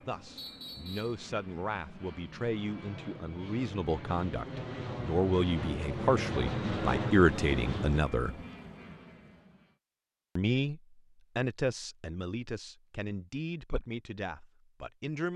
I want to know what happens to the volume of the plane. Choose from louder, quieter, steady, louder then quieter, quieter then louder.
louder then quieter.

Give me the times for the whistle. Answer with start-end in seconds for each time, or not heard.
0.3-1.2.